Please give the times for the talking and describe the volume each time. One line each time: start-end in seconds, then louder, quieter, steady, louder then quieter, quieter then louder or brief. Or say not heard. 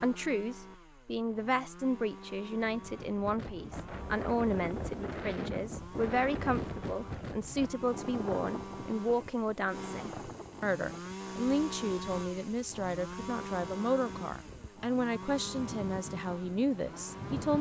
0.0-17.5 steady.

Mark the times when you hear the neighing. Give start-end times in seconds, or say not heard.
not heard.